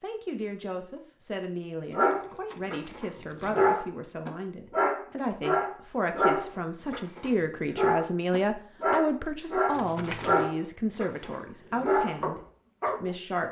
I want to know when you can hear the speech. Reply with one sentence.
The speech can be heard from 0.0 to 13.4 s.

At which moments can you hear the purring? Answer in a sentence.
The purring can't be heard in this clip.